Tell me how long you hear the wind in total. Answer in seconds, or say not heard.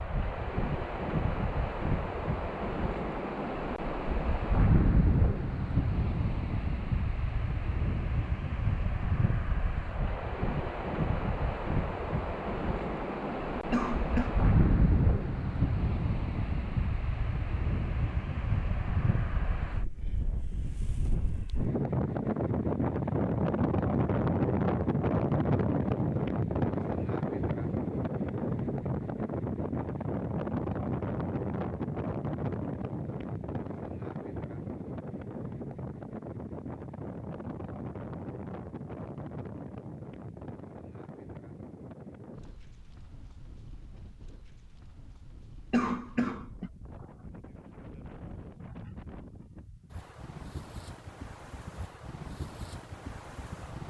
54 s.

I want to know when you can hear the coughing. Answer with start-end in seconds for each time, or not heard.
13.7-14.3, 45.7-46.7.